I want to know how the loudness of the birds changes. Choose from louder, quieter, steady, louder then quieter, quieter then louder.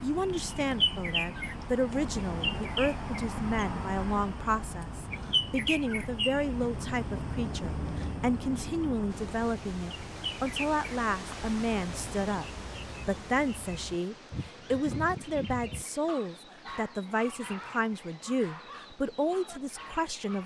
quieter.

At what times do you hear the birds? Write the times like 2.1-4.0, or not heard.
0.0-20.4.